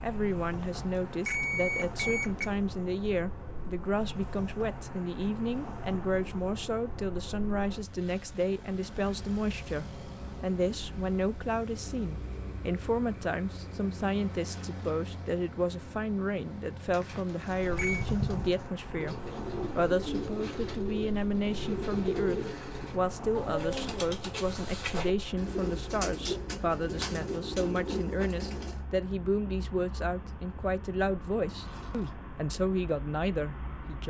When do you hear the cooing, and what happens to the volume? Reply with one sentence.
The cooing can be heard from 16.9 to 28.8 s, at a steady volume.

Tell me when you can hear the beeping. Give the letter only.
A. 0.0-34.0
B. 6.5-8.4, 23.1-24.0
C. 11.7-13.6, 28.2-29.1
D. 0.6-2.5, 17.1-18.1
D.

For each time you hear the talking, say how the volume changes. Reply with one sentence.
You can hear the talking from 0.0 to 34.0 s, at a steady volume.